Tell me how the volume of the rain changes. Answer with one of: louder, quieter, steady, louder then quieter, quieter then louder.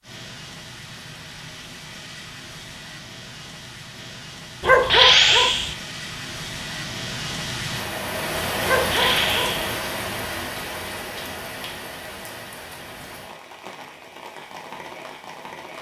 louder then quieter.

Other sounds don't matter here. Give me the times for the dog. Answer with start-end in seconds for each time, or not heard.
4.6-5.8, 8.7-9.8.